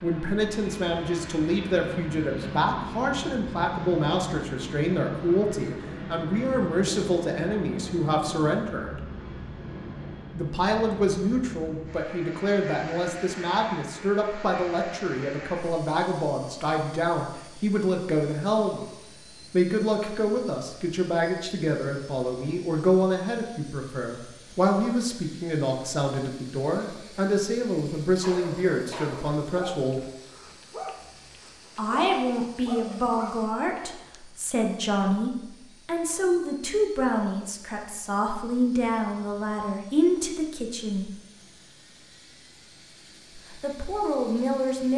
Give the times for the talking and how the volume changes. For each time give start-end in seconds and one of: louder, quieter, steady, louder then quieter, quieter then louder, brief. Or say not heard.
0.0-8.9 steady
10.3-18.8 steady
19.5-30.0 steady
31.8-41.1 steady
43.4-44.9 brief.